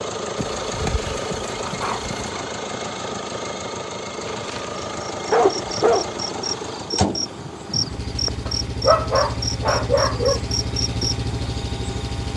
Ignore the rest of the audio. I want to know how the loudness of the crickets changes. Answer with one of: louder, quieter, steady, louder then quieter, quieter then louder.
steady.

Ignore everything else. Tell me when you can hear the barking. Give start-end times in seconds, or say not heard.
0.3-2.4, 4.2-6.2, 8.4-10.4.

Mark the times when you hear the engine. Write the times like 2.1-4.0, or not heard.
0.0-12.3.